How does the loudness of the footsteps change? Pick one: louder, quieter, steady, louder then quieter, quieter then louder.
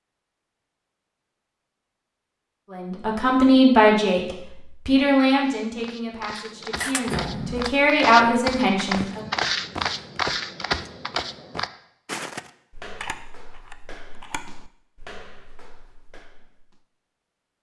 louder then quieter.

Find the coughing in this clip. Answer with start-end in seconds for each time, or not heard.
7.0-7.8.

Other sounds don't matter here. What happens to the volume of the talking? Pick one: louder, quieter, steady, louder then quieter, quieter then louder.
quieter then louder.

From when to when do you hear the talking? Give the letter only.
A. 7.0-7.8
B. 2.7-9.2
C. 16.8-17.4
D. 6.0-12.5
B.